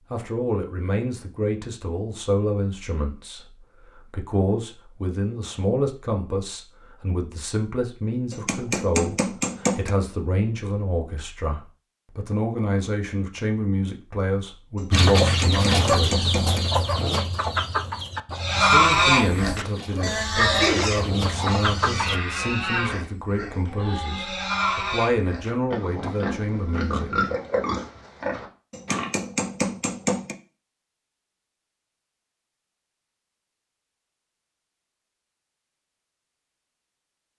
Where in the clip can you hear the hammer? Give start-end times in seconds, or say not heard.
8.3-9.9, 14.8-16.6, 28.7-30.4.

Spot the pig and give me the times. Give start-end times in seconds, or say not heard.
18.4-29.1.